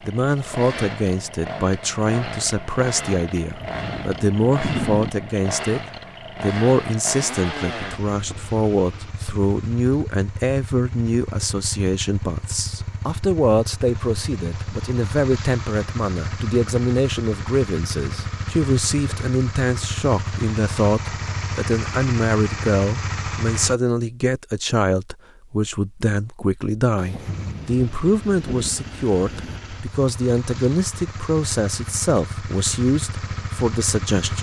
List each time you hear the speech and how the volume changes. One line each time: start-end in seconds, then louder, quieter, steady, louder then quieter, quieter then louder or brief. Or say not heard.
0.1-5.8 steady
6.4-34.3 steady.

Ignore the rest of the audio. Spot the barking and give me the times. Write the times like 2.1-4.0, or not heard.
not heard.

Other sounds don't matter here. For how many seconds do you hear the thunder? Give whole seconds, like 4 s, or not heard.
4 s.